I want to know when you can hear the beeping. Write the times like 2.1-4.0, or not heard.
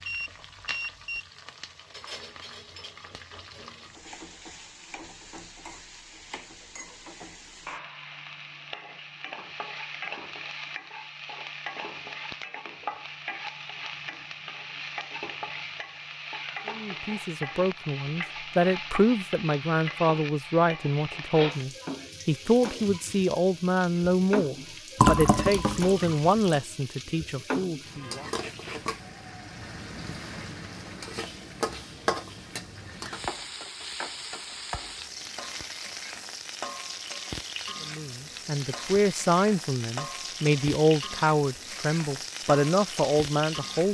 0.1-1.2.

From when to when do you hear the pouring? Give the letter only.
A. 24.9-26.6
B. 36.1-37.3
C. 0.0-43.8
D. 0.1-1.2
A.